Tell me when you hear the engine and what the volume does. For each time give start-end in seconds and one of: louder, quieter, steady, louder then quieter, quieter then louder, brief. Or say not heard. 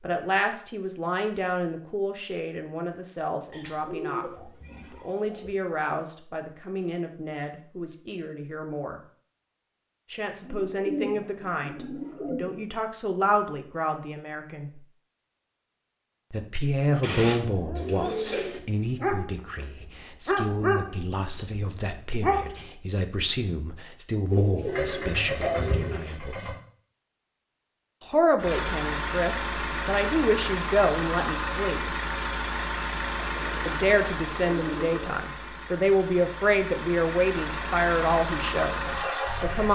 24.6-26.6 brief
28.4-39.7 quieter then louder.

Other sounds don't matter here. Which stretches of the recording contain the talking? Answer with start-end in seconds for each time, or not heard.
0.0-9.0, 10.1-14.8, 16.3-26.6, 28.1-31.9, 33.6-39.7.